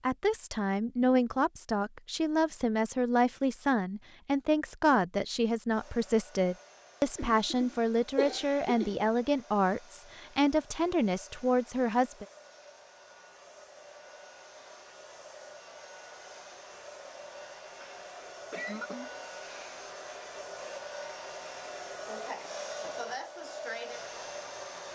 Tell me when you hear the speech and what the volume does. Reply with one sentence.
The speech can be heard from 0.0 to 12.2 s, at a steady volume.